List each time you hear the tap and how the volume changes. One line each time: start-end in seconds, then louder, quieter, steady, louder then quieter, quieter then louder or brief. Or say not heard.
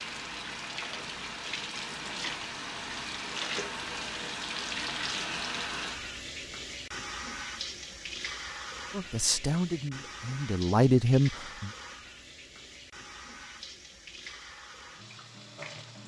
0.0-16.0 quieter.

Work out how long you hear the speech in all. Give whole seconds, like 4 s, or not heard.
3 s.